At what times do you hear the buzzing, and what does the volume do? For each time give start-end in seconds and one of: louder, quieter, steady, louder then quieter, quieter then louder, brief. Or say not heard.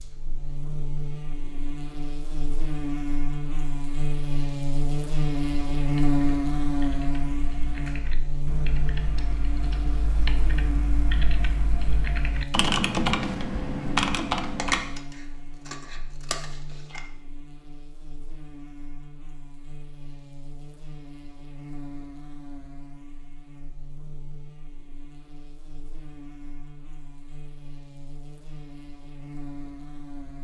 0.0-30.3 quieter.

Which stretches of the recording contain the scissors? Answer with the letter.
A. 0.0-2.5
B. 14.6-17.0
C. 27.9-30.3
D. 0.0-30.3
B.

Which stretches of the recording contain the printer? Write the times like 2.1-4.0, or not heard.
not heard.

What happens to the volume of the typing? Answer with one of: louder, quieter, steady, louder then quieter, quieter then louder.
louder.